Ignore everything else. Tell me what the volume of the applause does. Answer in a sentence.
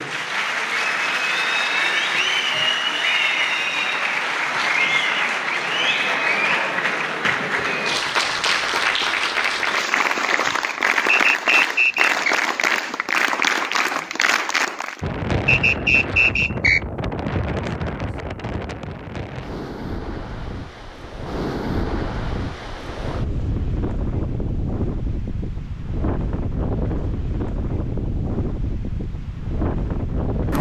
The volume of the applause stays about the same.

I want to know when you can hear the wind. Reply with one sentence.
You can hear the wind from 15.0 to 30.5 s.